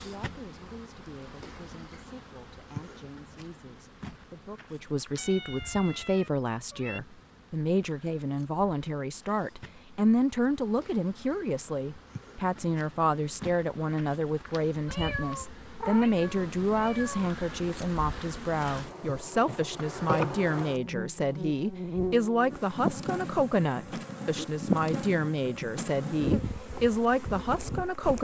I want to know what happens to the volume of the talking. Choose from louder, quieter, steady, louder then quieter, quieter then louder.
louder.